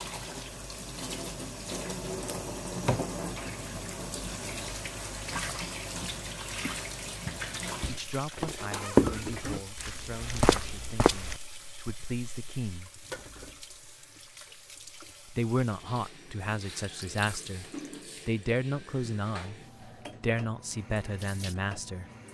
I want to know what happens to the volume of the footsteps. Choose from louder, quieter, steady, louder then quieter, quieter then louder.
louder then quieter.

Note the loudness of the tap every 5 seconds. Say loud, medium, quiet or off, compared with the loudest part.
loud, loud, medium, medium, medium.